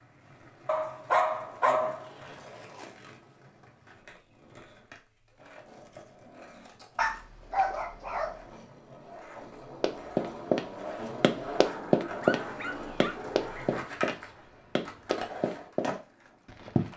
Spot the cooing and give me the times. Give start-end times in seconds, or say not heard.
not heard.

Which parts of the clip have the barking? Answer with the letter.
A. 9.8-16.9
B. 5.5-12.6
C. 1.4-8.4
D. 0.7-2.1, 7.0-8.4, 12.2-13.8
D.